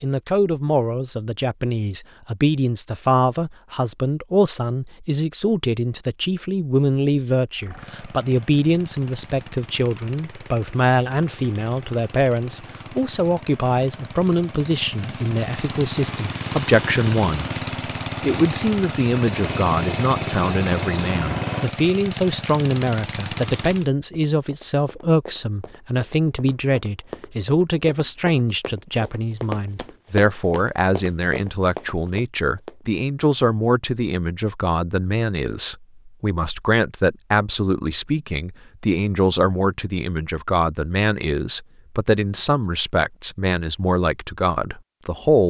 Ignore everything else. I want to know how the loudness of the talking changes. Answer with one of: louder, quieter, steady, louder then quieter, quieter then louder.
steady.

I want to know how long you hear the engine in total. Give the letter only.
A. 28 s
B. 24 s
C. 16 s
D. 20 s
C.